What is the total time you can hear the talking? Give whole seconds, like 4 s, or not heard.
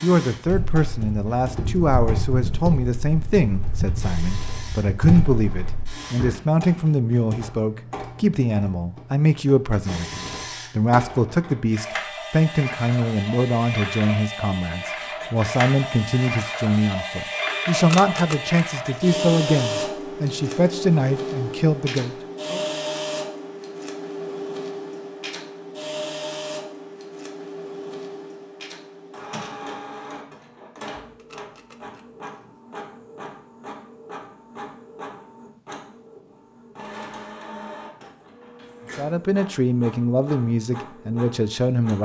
26 s.